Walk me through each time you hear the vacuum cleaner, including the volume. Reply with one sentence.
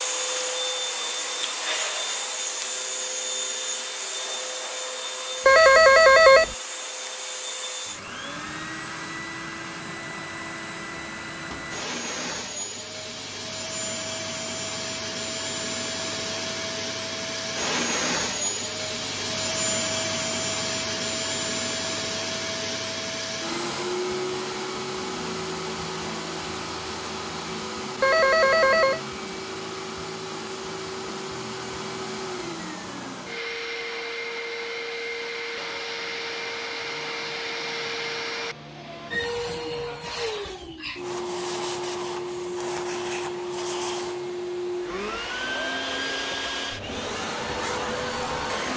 The vacuum cleaner can be heard from 0.0 to 48.7 s, at a steady volume.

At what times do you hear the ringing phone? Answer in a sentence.
You can hear the ringing phone from 5.5 to 6.5 s and from 28.0 to 29.0 s.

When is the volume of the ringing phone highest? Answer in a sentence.
The volume of the ringing phone peaks at 6 seconds.